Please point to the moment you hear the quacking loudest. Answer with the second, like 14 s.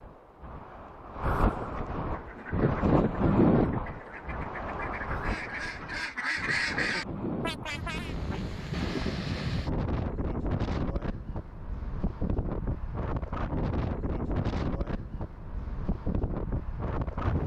7 s.